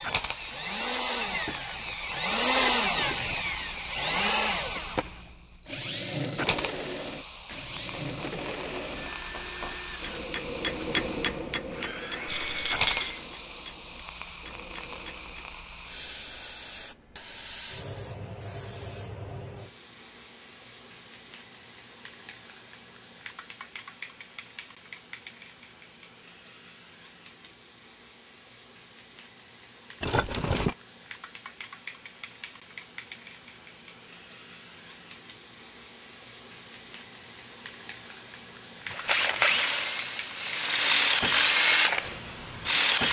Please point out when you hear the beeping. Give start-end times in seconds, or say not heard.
not heard.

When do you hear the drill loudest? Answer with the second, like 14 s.
41 s.